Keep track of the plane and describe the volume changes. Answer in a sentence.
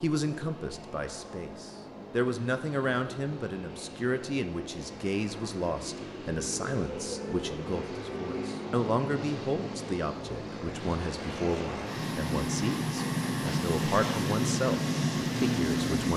The volume of the plane goes up.